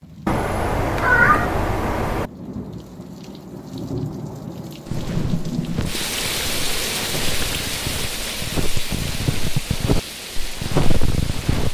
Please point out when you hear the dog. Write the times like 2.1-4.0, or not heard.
not heard.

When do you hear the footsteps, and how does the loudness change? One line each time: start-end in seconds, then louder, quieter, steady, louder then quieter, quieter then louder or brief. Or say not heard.
4.8-11.6 louder.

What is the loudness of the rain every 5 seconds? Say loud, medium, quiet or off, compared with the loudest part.
medium, loud, medium.